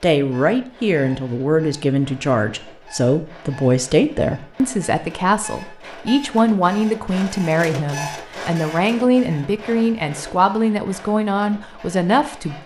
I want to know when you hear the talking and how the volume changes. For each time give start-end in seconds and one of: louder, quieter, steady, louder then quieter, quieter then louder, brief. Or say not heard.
0.0-12.6 steady.